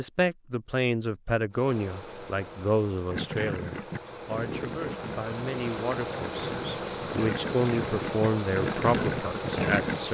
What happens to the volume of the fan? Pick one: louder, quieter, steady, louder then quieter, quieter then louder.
louder.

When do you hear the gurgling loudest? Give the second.
10 s.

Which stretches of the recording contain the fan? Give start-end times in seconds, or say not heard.
1.5-10.0.